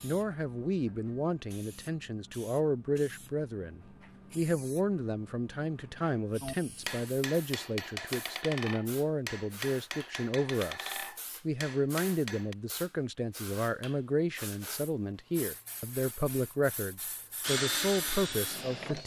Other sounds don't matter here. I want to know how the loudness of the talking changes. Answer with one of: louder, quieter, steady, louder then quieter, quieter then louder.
steady.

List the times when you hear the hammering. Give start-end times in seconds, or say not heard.
6.4-12.6.